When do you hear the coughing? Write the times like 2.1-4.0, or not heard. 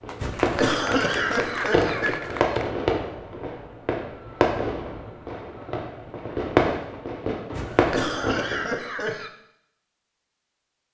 0.2-2.2, 7.5-9.3.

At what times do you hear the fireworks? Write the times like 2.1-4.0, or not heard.
0.0-8.7.